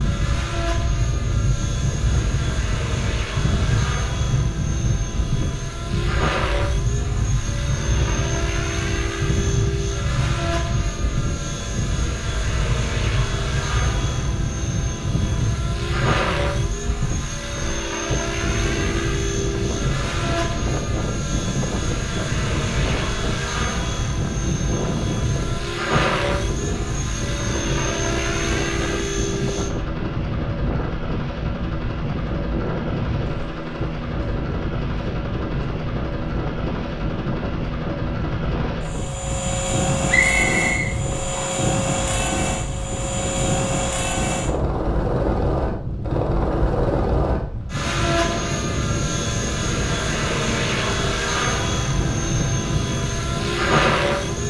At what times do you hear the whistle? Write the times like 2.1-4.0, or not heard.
40.0-41.5.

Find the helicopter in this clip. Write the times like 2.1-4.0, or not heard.
0.0-54.4.